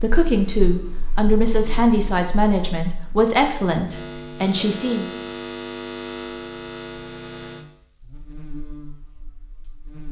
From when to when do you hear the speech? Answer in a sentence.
The speech can be heard from 0.0 to 5.1 s.